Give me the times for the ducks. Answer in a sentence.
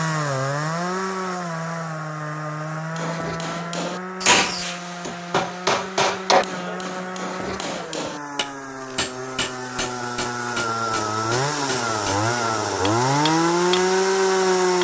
You can't hear the ducks here.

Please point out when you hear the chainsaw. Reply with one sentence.
The chainsaw can be heard from 0.0 to 14.8 s.